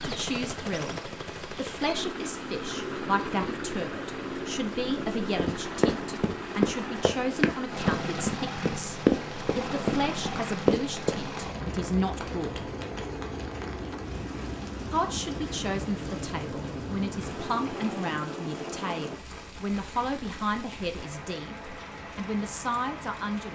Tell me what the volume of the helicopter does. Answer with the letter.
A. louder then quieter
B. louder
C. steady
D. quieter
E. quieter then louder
C.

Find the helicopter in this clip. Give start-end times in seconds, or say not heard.
0.0-19.2.